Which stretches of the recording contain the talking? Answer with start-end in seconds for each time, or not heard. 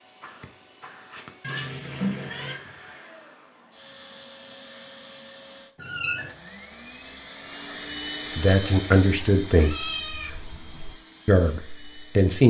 8.3-9.8, 11.2-12.4.